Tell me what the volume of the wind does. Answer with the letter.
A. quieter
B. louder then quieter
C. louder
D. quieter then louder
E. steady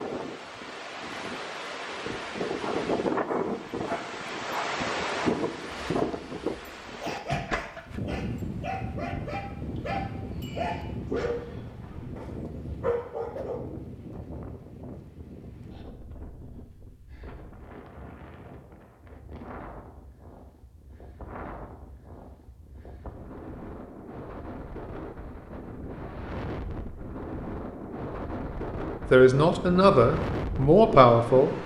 D.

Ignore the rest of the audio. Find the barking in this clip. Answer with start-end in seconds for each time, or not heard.
2.6-13.6.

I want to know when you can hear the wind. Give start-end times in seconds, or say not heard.
0.0-31.6.